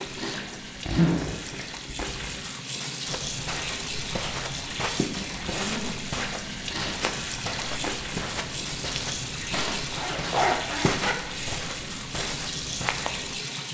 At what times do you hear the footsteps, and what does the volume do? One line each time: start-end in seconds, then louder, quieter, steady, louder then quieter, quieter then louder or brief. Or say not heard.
3.0-13.3 steady.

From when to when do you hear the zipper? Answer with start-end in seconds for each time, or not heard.
0.1-2.4, 5.1-6.0, 9.7-11.2.